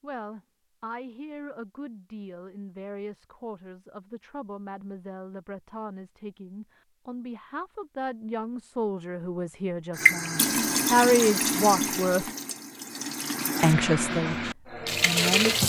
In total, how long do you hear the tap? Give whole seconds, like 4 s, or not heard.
6 s.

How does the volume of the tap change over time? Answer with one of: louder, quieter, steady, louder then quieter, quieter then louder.
quieter then louder.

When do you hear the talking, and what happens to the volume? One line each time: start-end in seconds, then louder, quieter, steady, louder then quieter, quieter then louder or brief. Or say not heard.
0.0-12.2 louder
13.6-15.6 brief.